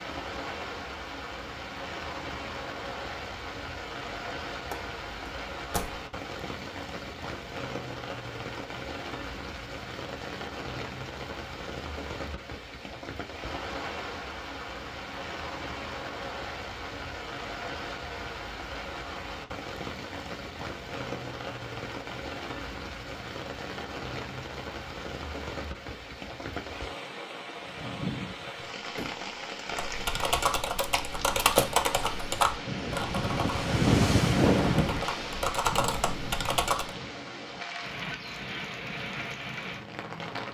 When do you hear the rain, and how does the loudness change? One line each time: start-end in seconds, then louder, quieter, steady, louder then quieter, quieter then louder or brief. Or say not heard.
0.0-40.4 louder.